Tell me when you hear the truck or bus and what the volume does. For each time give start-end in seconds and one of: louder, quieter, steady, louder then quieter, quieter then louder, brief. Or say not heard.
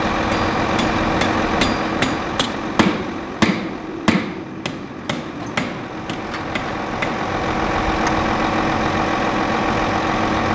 0.0-10.5 quieter then louder.